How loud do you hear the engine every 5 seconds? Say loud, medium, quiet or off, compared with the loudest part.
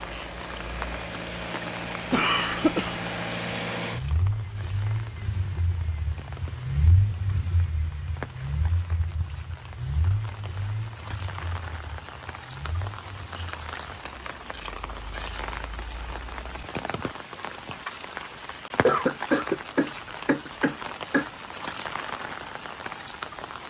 loud, loud, medium, off, off.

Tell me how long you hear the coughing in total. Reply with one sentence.
You can hear the coughing for 3 seconds altogether.